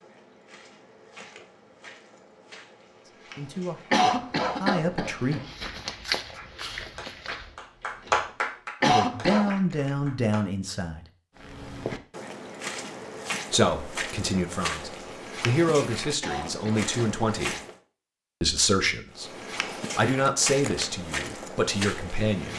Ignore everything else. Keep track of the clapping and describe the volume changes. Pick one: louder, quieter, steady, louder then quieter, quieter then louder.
louder then quieter.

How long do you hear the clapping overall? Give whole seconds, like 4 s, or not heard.
4 s.